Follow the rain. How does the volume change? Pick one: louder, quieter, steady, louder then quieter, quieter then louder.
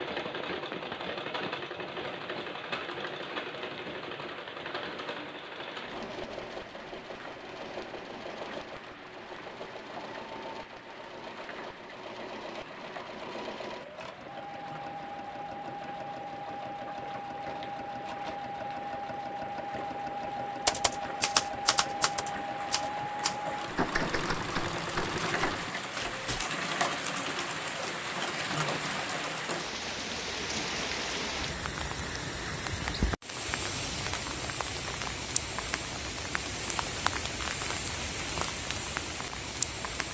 louder.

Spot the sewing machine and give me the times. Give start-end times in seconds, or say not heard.
0.0-25.7.